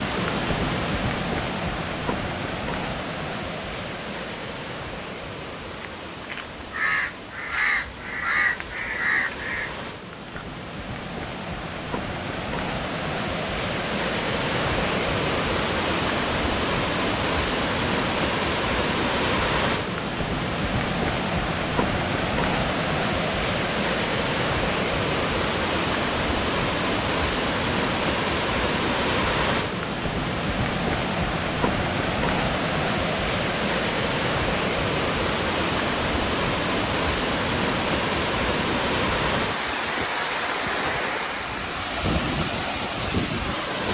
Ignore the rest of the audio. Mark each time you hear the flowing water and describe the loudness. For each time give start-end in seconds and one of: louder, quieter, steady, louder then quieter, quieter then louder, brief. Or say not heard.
0.0-43.9 louder.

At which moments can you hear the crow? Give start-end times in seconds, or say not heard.
5.8-10.4.